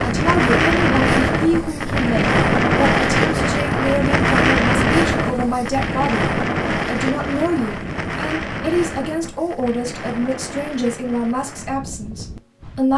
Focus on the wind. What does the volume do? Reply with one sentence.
The loudness of the wind goes down.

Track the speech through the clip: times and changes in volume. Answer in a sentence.
The speech can be heard from 0.0 to 12.9 s, at a steady volume.